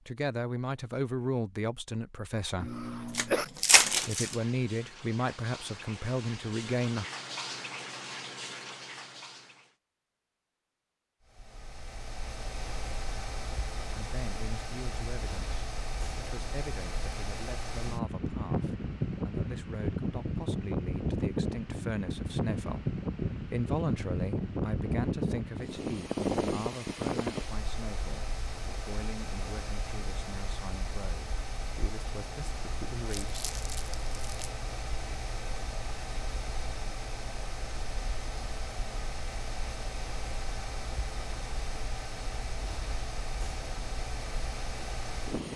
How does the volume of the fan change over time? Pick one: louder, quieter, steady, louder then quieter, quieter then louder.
louder then quieter.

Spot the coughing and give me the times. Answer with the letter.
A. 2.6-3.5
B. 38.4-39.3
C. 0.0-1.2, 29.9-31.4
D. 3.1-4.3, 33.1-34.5
A.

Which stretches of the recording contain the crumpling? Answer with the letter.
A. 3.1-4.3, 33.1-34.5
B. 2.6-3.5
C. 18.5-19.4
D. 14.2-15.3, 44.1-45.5
A.